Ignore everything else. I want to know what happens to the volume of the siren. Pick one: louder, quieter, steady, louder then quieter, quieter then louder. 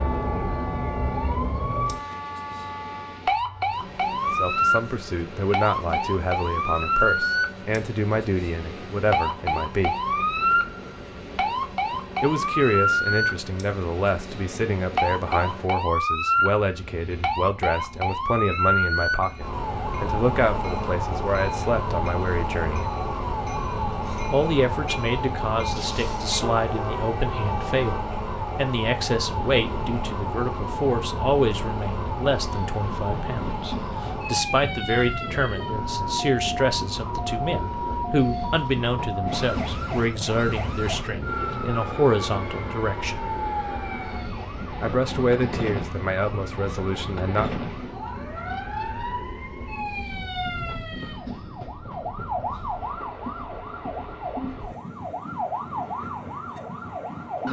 quieter.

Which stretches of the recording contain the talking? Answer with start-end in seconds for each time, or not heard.
4.2-9.9, 12.2-22.9, 24.3-43.2, 44.8-47.5.